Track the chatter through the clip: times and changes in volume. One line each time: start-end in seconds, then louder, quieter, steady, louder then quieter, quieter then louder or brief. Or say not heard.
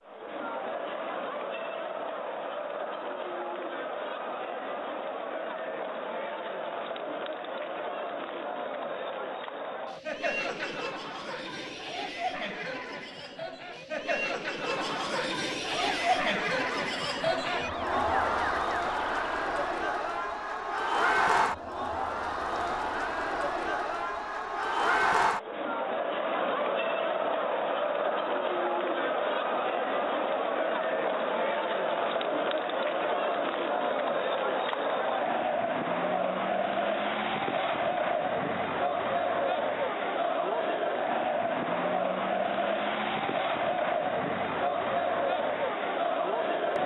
0.0-46.8 louder.